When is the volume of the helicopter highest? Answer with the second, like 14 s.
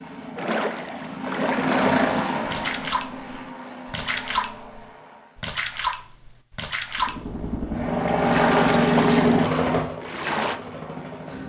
9 s.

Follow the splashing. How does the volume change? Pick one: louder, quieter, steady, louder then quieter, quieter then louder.
steady.